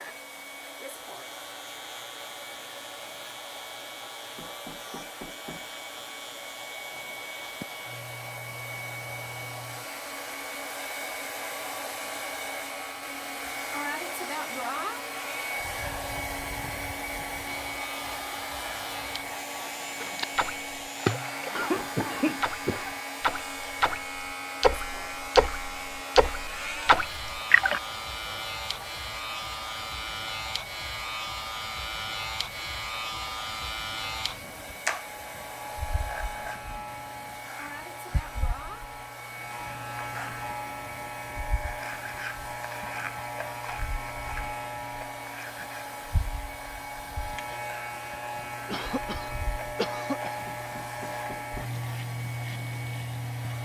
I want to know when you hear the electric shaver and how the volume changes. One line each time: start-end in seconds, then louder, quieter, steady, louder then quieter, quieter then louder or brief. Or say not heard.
0.1-53.6 louder.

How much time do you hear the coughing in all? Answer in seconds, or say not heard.
3 s.